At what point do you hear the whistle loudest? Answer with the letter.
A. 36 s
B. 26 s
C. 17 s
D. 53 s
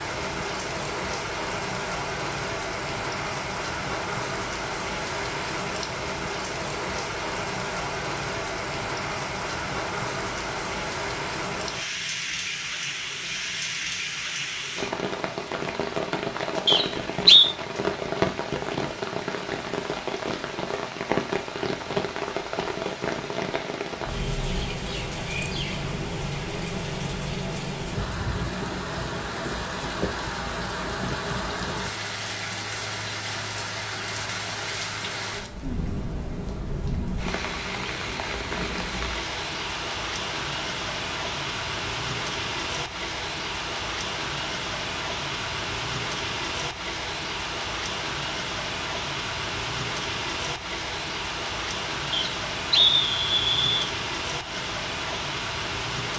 C.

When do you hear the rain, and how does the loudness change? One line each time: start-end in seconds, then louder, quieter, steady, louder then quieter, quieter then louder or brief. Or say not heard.
0.0-56.1 steady.